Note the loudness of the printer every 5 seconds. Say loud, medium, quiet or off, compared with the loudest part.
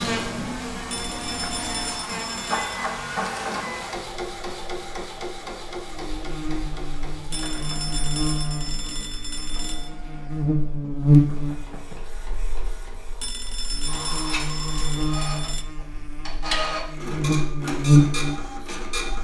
loud, medium, medium, loud.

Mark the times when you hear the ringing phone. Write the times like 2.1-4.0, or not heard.
0.9-2.8, 7.3-9.9, 13.2-15.7.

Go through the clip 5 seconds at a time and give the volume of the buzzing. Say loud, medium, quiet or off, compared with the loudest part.
medium, medium, loud, loud.